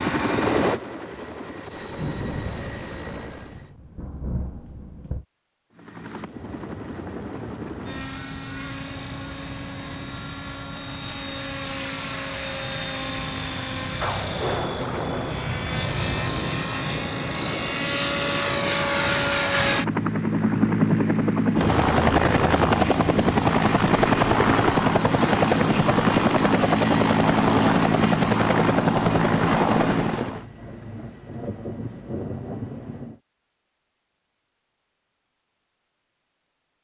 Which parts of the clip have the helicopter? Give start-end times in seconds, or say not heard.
0.0-3.7, 5.7-30.4.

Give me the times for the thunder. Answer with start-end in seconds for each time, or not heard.
1.7-5.2, 14.0-16.4, 30.3-33.2.